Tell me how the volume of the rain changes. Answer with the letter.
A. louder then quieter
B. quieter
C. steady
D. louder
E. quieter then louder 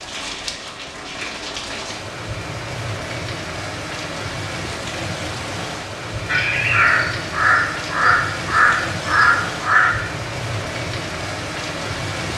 C.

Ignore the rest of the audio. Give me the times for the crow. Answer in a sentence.
You can hear the crow from 6.2 to 9.9 s.